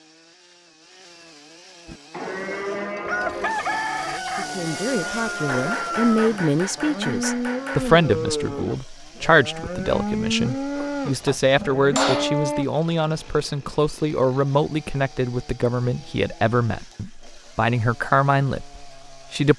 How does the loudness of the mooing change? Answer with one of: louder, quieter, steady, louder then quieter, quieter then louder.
quieter then louder.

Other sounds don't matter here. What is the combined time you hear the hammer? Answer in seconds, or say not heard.
4 s.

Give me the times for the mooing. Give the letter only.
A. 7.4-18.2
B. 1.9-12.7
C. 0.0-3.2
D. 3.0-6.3
B.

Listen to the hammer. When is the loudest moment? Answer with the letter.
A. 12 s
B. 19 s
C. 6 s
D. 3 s
A.